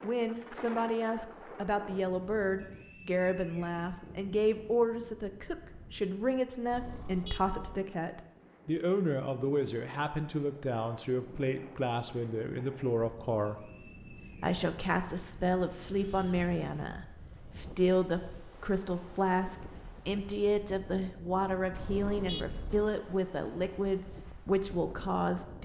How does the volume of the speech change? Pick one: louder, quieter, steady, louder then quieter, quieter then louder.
steady.